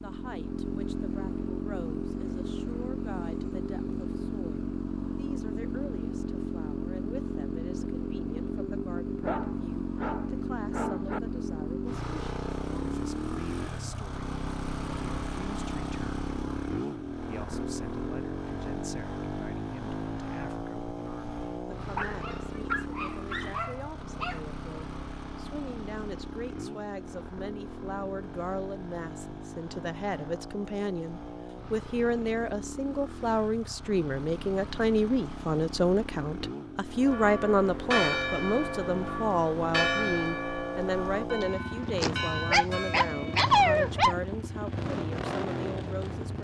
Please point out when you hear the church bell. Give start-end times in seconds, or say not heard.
37.0-43.4.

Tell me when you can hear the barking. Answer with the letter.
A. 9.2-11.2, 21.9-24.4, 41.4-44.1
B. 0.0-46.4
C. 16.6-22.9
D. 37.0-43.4
A.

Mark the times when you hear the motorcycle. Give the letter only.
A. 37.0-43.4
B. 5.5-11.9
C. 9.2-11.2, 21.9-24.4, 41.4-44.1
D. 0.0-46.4
D.